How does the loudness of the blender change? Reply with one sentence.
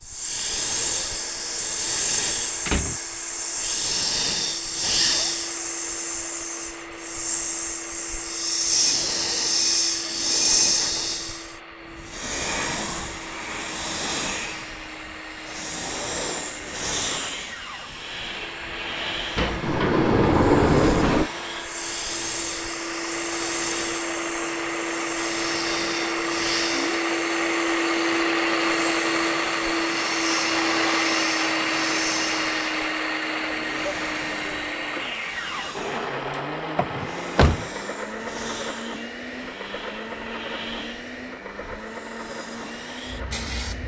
The volume of the blender goes up, then down.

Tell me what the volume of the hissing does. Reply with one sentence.
The volume of the hissing goes down.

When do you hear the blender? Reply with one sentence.
You can hear the blender from 0.0 to 43.8 s.